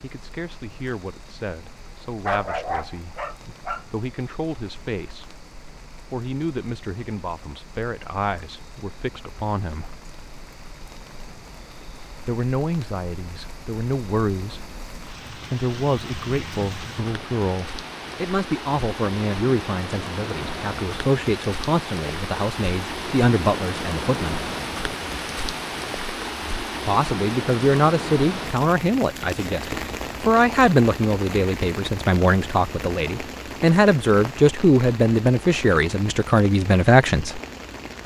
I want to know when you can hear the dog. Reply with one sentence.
You can hear the dog from 2.2 to 3.9 s.